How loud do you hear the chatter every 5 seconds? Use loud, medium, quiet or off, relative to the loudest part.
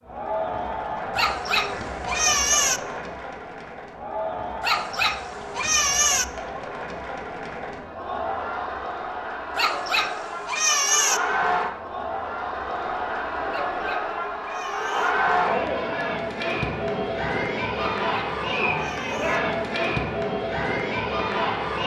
medium, medium, loud, loud, loud.